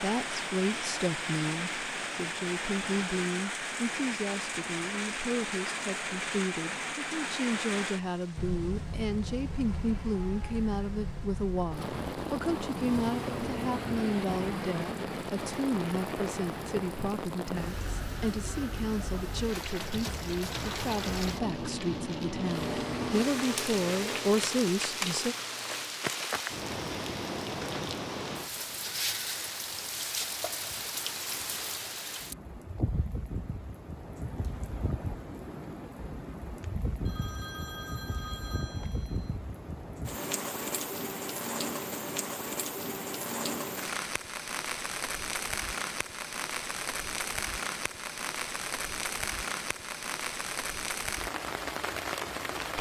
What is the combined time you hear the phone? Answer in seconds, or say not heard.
3 s.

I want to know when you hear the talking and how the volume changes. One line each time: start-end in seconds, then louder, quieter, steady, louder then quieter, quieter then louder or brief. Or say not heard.
0.0-25.4 steady.